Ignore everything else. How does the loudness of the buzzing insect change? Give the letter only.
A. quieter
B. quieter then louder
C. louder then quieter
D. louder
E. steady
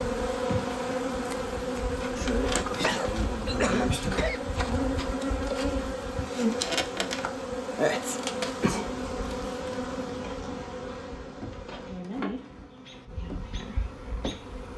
A.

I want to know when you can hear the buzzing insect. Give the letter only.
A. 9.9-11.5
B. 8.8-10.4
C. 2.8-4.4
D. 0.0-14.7
D.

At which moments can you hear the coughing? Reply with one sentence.
You can hear the coughing from 2.8 to 4.4 s.